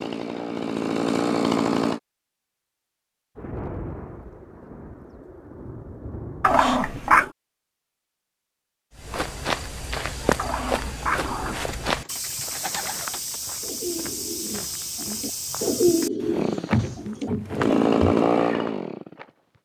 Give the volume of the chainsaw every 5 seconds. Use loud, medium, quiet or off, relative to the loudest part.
loud, off, off, loud.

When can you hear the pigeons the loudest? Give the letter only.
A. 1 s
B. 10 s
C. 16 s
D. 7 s
C.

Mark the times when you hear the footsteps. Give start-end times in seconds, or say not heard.
8.9-18.1.